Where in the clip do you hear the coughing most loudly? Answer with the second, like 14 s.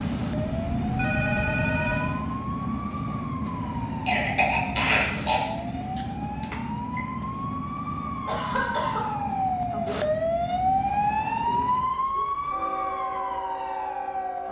5 s.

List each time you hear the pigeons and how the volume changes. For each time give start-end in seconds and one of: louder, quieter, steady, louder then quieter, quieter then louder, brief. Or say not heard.
not heard.